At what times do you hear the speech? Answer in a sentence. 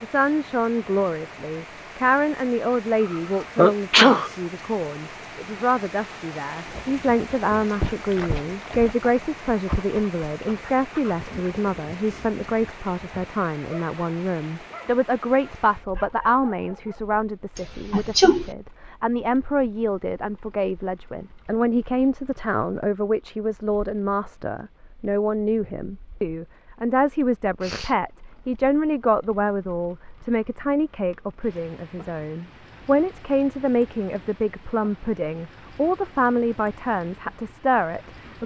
You can hear the speech from 0.0 to 38.4 s.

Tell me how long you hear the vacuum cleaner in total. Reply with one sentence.
You can't hear the vacuum cleaner here.